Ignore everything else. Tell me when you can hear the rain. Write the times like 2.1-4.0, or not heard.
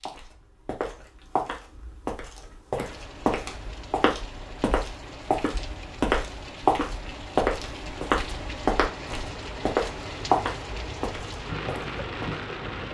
2.7-12.8.